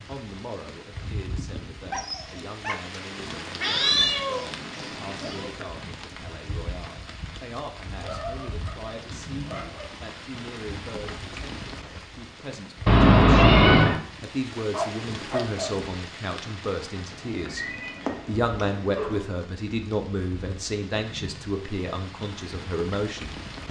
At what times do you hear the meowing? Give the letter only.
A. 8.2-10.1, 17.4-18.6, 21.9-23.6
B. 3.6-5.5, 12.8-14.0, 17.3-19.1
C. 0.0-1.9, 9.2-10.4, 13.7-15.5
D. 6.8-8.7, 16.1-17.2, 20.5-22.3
B.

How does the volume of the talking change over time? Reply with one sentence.
The volume of the talking goes up.